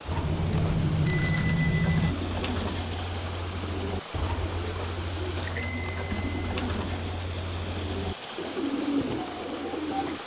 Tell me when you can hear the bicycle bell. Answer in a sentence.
You can hear the bicycle bell from 0.1 to 2.1 s and from 5.5 to 6.3 s.